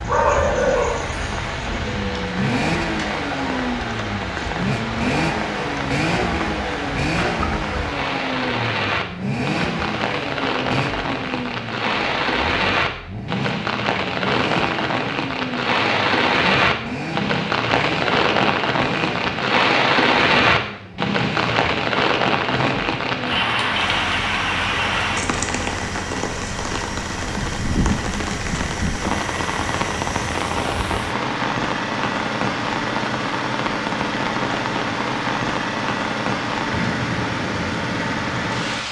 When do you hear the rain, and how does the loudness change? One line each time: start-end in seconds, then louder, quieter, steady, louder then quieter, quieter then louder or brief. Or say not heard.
0.0-38.8 louder then quieter.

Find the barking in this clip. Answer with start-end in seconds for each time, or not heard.
0.0-1.9.